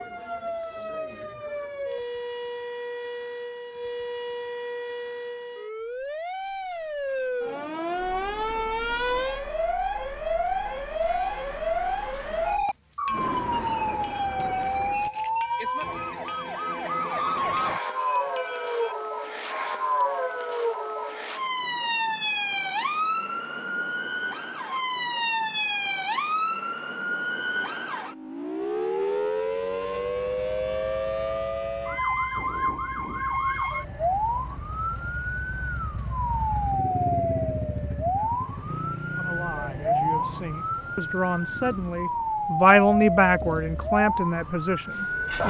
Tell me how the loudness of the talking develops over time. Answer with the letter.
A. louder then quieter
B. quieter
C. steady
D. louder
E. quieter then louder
A.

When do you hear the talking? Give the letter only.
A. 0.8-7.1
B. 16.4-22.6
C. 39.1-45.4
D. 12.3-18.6
C.